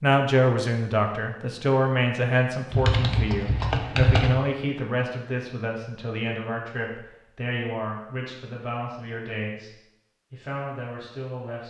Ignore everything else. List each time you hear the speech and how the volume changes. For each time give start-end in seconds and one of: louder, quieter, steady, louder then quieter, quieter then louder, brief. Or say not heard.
0.0-9.7 quieter
10.3-11.6 brief.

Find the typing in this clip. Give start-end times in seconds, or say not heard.
2.7-4.3.